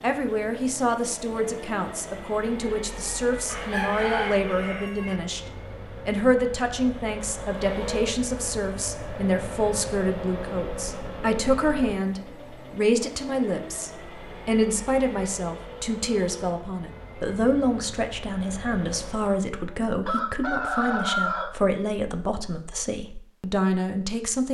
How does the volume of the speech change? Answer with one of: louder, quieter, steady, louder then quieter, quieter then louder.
steady.